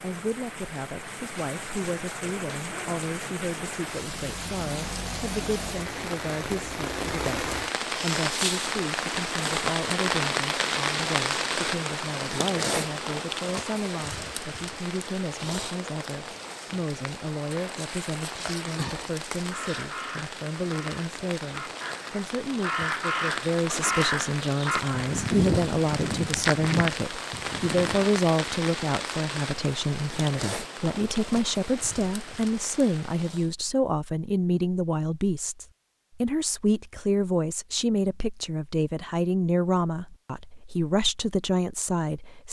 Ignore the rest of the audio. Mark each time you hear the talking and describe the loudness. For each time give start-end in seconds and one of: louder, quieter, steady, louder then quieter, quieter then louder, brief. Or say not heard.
0.0-42.4 louder.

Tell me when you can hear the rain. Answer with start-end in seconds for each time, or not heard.
0.0-33.5.